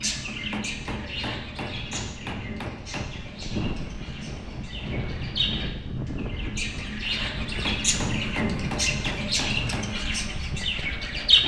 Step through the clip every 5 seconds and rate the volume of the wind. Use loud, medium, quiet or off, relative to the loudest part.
loud, loud, medium.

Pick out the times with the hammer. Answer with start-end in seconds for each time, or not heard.
0.2-3.1, 7.4-9.9.